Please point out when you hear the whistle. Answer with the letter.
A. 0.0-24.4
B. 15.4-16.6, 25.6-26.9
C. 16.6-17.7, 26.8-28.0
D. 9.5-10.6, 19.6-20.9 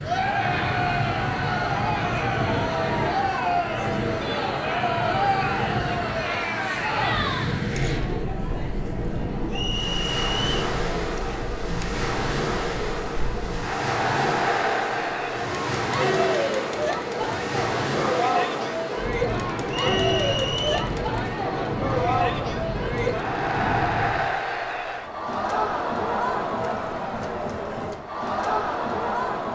D.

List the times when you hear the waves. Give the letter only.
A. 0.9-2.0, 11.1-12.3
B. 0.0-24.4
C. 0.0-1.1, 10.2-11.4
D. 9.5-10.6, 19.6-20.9
B.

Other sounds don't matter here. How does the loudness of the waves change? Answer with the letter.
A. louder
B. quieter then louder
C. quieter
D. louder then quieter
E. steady
E.